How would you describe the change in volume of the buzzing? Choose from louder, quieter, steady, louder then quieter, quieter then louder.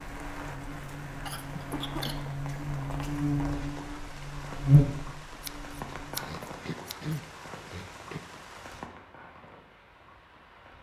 louder then quieter.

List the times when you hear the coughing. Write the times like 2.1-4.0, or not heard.
1.7-2.3, 6.2-8.2.